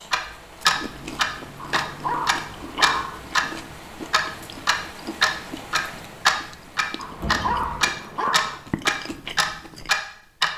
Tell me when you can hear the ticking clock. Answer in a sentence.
The ticking clock can be heard from 0.1 to 3.5 s and from 4.1 to 10.5 s.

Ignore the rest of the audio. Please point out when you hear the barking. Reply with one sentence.
The barking can be heard from 1.6 to 3.2 s and from 7.0 to 8.6 s.